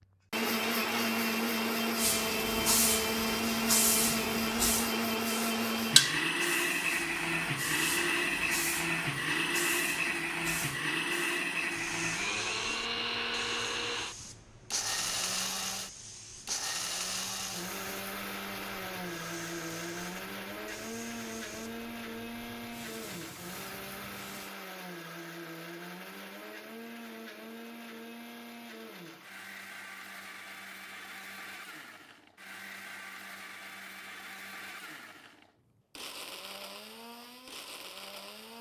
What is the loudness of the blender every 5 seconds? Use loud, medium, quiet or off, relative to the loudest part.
loud, loud, loud, medium, medium, quiet, quiet, quiet.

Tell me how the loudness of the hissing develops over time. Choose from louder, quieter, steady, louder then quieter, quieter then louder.
quieter.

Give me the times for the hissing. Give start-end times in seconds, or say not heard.
1.9-24.6.